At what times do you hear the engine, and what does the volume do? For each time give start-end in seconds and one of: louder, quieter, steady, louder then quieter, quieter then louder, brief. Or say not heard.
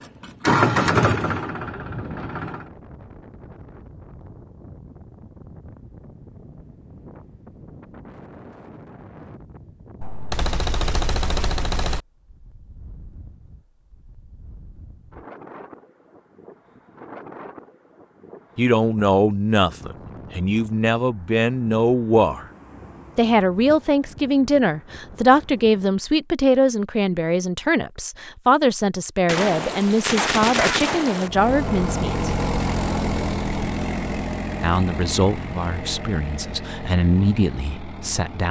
0.0-2.7 brief
31.2-38.4 quieter.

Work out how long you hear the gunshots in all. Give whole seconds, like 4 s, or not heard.
4 s.